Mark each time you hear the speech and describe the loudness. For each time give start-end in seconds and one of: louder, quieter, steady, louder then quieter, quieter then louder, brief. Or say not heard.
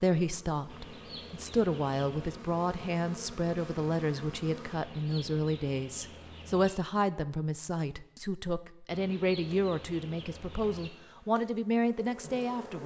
0.0-12.8 steady.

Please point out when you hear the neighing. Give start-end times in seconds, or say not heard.
not heard.